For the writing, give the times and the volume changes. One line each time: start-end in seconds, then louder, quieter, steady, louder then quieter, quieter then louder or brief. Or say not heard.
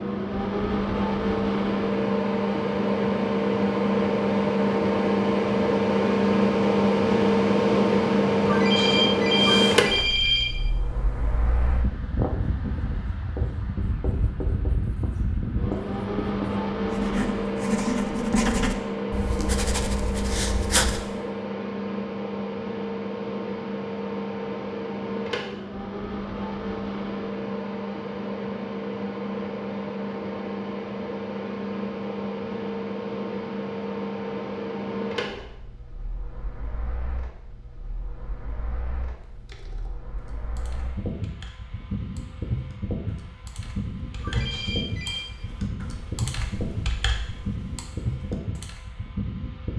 12.2-21.0 louder then quieter.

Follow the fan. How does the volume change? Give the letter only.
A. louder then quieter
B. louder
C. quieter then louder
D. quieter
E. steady
D.